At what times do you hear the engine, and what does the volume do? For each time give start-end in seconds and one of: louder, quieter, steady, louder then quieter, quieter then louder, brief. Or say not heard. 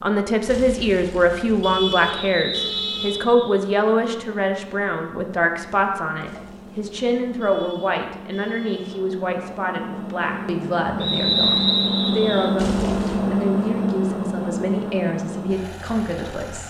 0.0-16.6 louder.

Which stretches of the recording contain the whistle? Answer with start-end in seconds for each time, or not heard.
2.1-3.6, 11.0-12.5.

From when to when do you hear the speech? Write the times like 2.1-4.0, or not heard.
0.0-16.6.